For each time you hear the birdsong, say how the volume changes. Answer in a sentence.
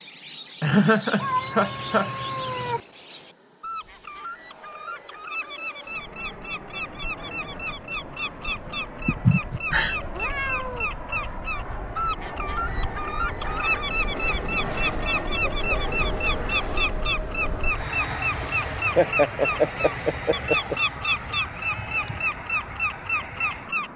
The birdsong can be heard from 0.0 to 23.9 s, getting louder.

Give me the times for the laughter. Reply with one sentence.
The laughter can be heard from 0.6 to 2.1 s, from 9.1 to 9.9 s and from 18.9 to 20.8 s.